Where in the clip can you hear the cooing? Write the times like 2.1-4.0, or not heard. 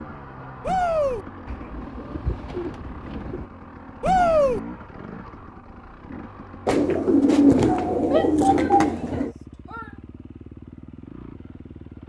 1.4-3.5, 6.7-9.3.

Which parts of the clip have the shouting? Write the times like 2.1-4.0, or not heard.
0.6-1.2, 4.0-4.6, 8.1-9.9.